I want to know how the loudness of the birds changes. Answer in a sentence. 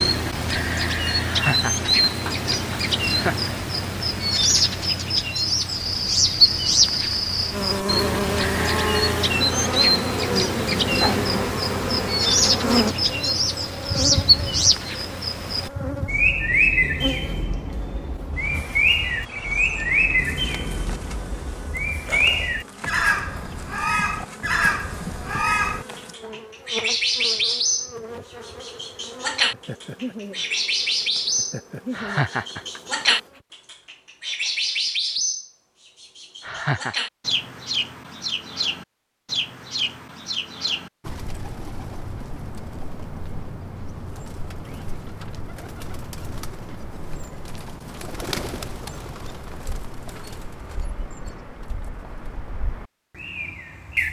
The loudness of the birds goes down.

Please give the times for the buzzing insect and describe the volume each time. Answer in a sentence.
You can hear the buzzing insect from 5.7 to 33.5 s, getting quieter.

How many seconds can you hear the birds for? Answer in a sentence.
The birds can be heard for 54 seconds in total.